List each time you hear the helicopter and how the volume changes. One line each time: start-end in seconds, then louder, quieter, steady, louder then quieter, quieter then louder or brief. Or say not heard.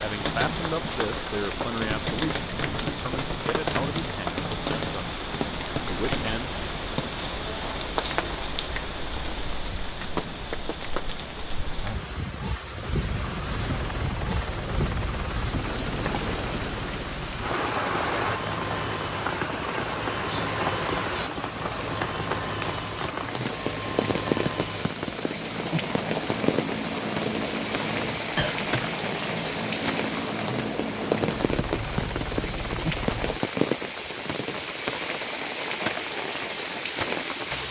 12.9-33.4 steady.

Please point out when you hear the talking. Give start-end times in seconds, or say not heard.
0.0-5.2, 5.8-6.7.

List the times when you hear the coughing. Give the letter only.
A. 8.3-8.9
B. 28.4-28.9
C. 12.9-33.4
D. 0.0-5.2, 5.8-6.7
B.